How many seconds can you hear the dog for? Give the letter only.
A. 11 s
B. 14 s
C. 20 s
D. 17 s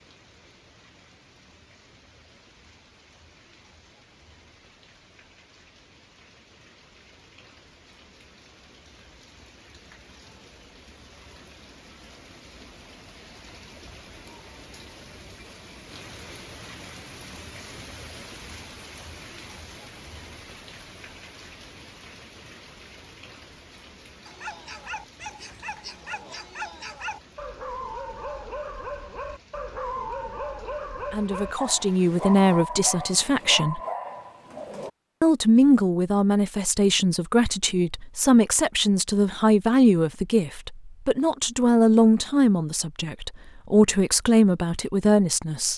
A.